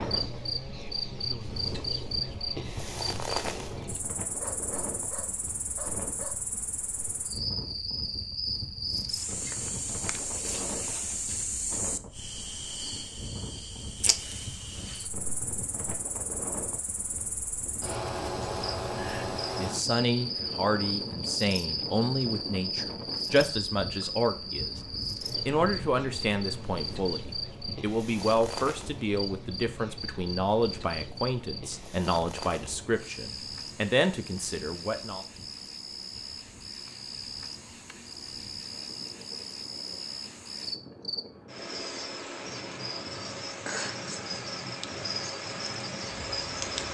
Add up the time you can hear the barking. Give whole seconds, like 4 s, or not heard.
2 s.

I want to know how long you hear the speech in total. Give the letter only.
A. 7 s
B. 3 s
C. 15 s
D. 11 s
C.